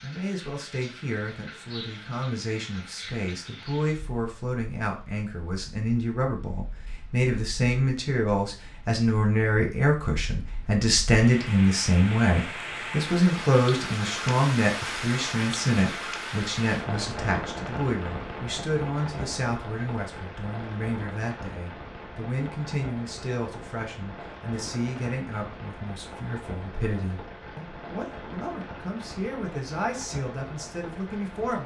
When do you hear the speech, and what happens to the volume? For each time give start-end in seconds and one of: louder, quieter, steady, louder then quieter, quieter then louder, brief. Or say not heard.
0.0-31.6 louder then quieter.